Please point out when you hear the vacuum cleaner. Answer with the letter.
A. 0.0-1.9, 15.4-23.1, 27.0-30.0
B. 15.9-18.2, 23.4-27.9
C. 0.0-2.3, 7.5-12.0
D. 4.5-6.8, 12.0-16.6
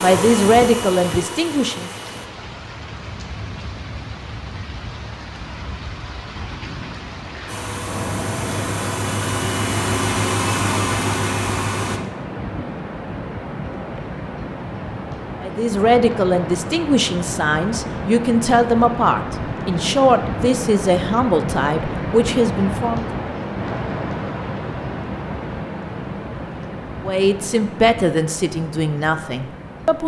C.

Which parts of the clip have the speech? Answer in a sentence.
The speech can be heard from 0.0 to 1.9 s, from 15.4 to 23.1 s and from 27.0 to 30.0 s.